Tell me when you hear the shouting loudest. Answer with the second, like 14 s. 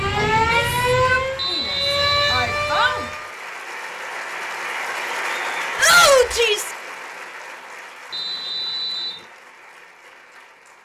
6 s.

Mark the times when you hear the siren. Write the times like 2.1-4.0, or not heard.
0.0-3.3.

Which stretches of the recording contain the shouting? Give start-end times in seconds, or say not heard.
0.3-3.1, 5.8-6.7.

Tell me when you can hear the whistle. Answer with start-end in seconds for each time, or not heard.
1.4-2.5, 8.1-9.2.